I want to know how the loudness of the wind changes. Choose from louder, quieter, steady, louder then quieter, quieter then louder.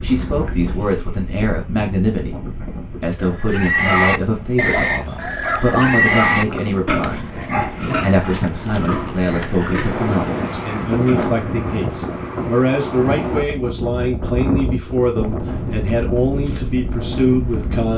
louder.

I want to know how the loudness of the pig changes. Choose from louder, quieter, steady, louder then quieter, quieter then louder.
quieter.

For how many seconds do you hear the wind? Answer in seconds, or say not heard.
18 s.